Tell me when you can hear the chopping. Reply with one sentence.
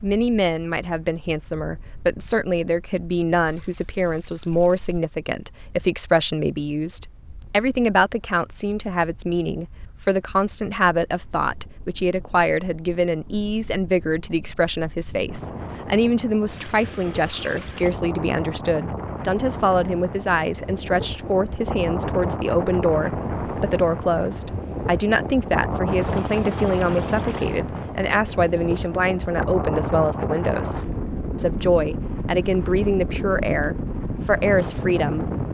You can't hear the chopping here.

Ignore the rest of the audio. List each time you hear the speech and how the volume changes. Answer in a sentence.
You can hear the speech from 0.0 to 35.3 s, at a steady volume.